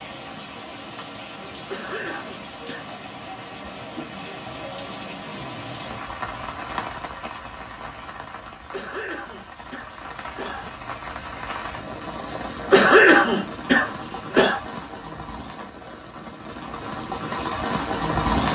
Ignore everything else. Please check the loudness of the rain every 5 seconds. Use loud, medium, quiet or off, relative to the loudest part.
medium, medium, medium, loud.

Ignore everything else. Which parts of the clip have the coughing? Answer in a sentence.
The coughing can be heard from 1.6 to 2.9 s, from 8.7 to 10.7 s and from 12.7 to 14.6 s.